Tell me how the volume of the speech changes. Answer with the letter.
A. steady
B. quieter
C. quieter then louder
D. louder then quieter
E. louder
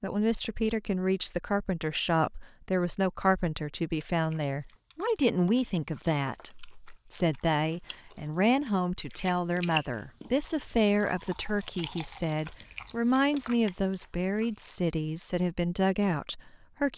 A.